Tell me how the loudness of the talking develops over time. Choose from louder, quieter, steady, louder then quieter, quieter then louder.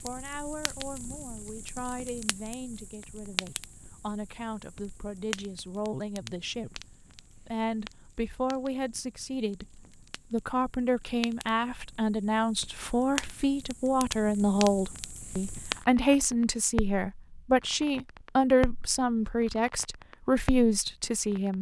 louder.